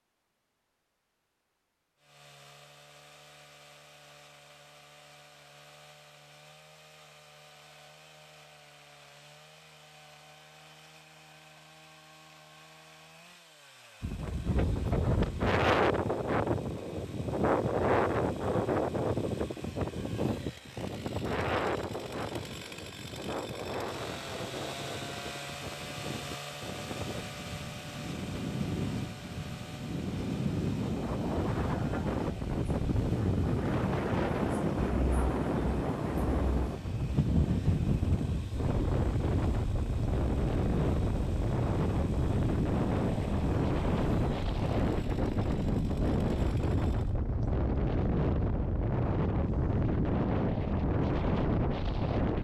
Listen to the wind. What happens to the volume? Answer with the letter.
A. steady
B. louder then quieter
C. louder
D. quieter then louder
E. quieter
D.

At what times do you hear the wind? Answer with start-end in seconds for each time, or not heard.
14.0-52.3.